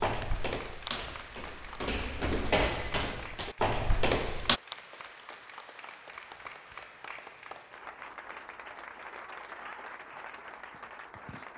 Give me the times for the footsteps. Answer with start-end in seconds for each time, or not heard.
0.0-4.6.